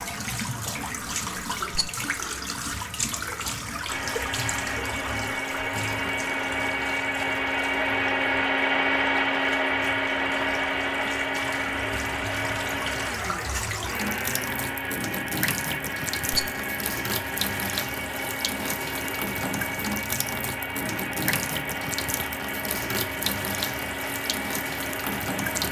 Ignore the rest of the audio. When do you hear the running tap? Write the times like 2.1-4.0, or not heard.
0.0-25.6.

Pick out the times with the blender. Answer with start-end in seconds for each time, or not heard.
3.9-25.6.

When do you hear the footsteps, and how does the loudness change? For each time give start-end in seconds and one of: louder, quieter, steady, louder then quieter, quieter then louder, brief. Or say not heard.
not heard.